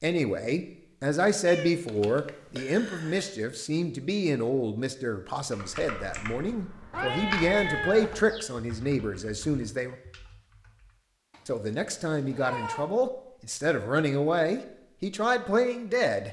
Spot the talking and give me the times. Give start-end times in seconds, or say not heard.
0.0-9.9, 11.4-16.2.